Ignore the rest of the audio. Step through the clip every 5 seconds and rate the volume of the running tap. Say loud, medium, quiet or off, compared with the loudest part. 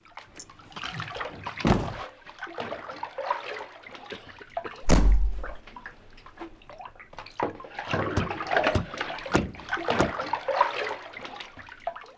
medium, loud, loud.